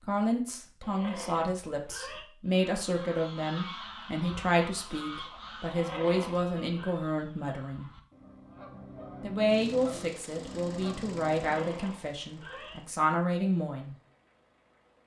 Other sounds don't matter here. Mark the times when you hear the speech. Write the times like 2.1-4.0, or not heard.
0.1-7.9, 9.2-13.9.